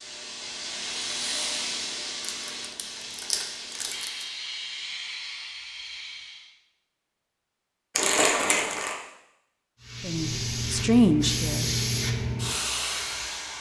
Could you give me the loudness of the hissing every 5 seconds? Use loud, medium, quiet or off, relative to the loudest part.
medium, medium, loud.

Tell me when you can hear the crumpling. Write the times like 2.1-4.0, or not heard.
2.2-4.2, 8.0-8.9.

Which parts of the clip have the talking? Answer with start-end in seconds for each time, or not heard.
10.0-11.7.